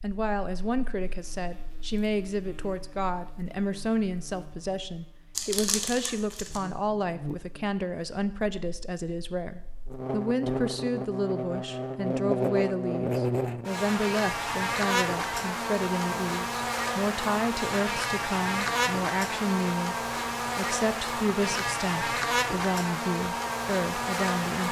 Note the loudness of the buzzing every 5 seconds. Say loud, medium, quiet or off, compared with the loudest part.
quiet, quiet, loud, loud, loud.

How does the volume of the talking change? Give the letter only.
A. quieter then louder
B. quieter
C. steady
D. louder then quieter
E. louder
C.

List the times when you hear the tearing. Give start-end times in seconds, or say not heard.
5.3-6.6.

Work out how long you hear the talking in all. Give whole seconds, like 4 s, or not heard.
24 s.